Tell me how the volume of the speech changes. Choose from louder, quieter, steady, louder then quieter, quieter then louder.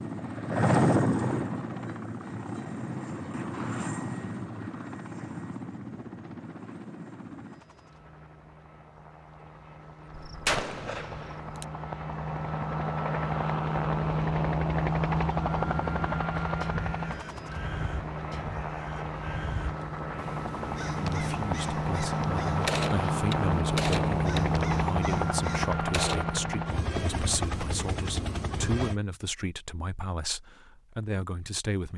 steady.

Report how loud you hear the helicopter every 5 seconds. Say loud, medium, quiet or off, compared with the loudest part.
loud, quiet, loud, loud, loud, loud, off.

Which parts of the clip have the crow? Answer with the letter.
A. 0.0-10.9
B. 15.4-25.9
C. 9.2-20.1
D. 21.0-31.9
B.